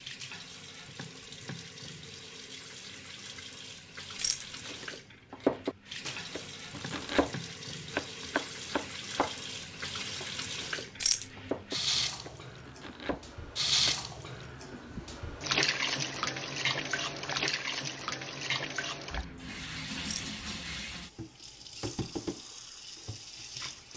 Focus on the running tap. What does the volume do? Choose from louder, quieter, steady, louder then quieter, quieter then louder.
louder then quieter.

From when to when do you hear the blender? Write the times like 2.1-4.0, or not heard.
not heard.